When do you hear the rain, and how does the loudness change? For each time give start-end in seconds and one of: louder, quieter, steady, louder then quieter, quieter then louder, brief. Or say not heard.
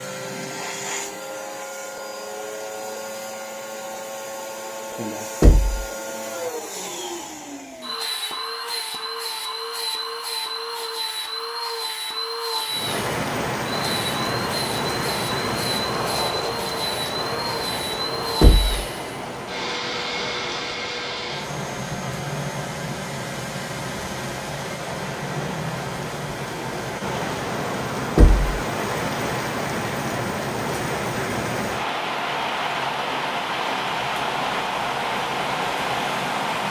12.7-36.6 quieter then louder.